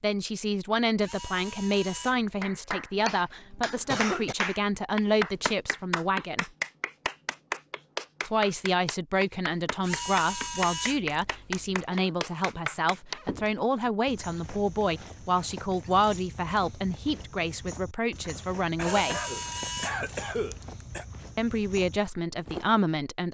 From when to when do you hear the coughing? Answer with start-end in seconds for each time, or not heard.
3.0-4.3, 11.4-12.2, 18.8-21.1.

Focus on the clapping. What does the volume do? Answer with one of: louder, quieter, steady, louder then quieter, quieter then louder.
steady.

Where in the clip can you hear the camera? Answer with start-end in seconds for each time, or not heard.
1.0-2.4, 9.8-11.8, 18.8-20.8.